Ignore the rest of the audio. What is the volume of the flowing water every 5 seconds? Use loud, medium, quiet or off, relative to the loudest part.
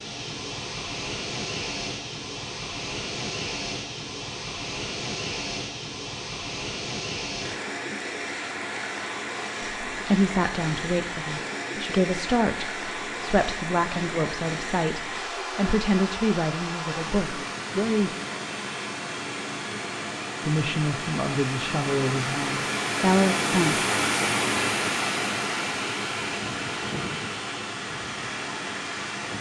medium, medium, medium, medium, loud, loud.